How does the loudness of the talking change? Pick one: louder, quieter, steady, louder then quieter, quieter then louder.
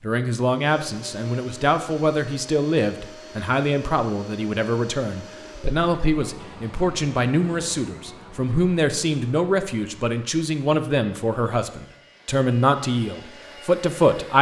steady.